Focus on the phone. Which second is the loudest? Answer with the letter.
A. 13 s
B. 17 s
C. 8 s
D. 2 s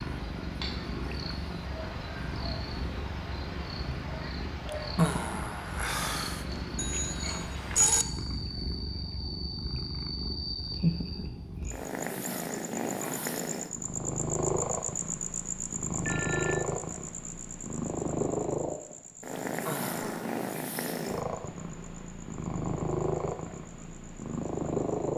C.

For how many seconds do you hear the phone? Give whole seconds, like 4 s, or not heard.
2 s.